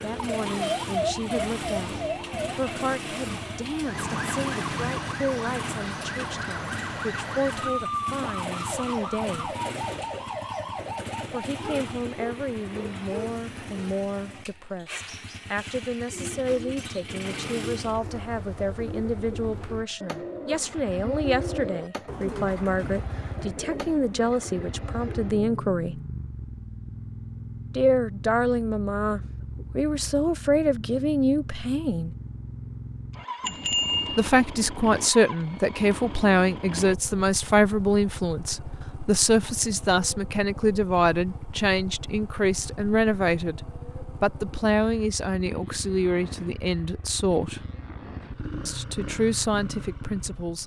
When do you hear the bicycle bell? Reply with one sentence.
The bicycle bell can be heard from 33.4 to 34.2 s.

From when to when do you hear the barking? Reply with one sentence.
You can hear the barking from 11.6 to 13.9 s.